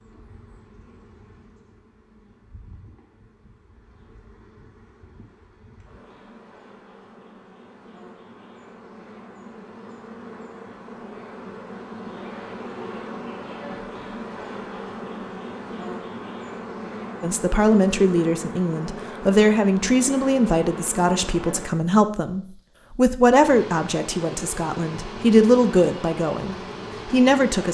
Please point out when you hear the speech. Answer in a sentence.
The speech can be heard from 17.2 to 27.7 s.